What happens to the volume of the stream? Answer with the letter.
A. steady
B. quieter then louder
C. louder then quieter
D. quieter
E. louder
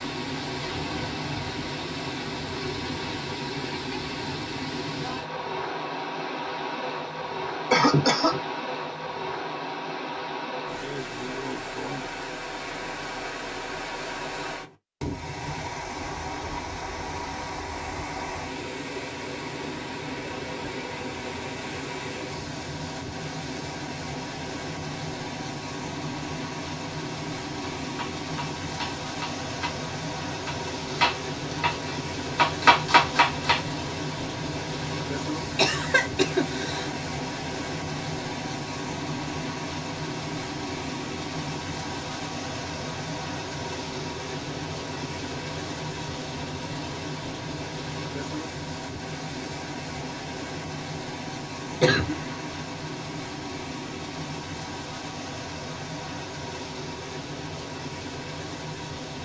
A.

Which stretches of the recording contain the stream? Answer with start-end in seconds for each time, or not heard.
0.0-59.1.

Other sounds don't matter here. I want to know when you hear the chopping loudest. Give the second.
33 s.